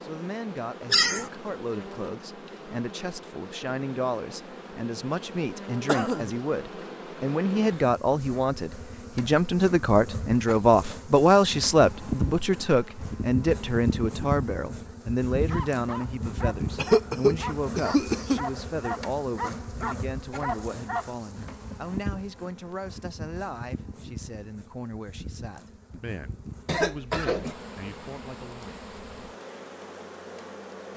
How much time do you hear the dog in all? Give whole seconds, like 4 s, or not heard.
6 s.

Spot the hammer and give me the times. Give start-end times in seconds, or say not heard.
not heard.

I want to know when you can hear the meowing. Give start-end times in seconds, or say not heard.
0.9-1.3.